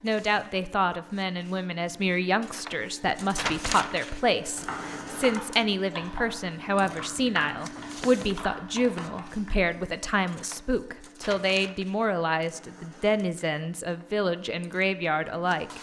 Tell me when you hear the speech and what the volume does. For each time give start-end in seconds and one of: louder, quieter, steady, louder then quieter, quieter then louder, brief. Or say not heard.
0.0-15.7 steady.